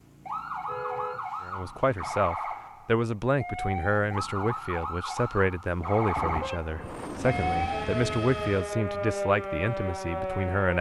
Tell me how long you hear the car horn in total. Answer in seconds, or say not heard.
4 s.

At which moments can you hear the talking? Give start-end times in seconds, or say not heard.
1.4-10.7.